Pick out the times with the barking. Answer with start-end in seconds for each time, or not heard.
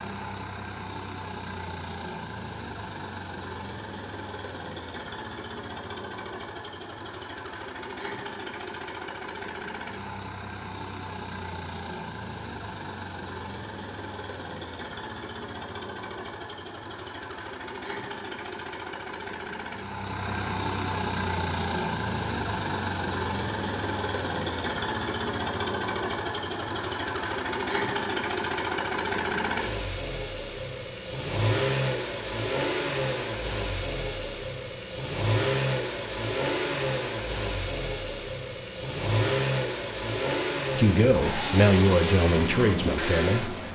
not heard.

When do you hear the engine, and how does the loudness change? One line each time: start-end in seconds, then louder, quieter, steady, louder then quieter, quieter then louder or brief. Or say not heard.
0.0-43.6 louder.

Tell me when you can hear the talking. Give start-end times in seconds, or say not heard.
40.8-43.5.